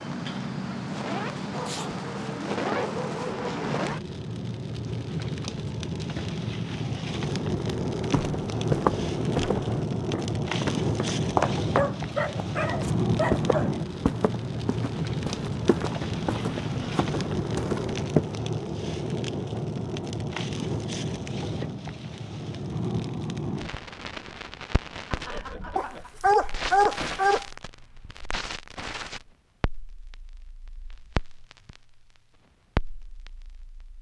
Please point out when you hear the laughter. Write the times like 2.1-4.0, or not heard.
25.1-26.2.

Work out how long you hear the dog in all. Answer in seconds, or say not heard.
6 s.